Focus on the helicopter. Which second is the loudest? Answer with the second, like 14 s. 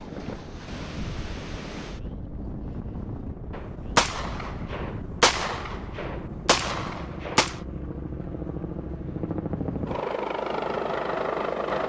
11 s.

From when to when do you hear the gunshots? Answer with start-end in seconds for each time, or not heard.
3.5-7.6.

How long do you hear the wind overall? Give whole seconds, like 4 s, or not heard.
7 s.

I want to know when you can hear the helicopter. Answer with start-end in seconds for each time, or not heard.
0.0-11.8.